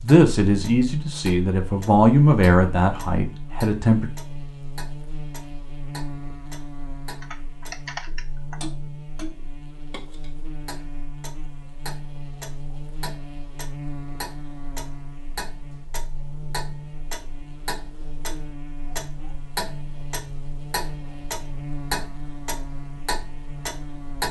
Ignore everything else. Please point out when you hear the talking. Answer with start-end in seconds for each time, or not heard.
0.0-4.1.